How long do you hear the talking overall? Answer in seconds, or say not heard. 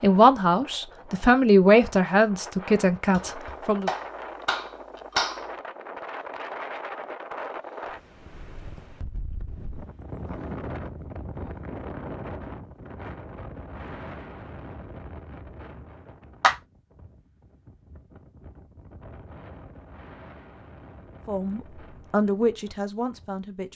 6 s.